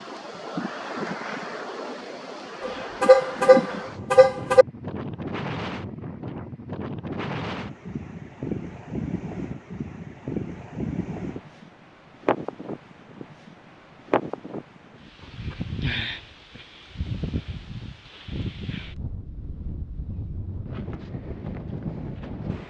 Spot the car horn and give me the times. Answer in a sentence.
You can hear the car horn from 2.6 to 4.7 s.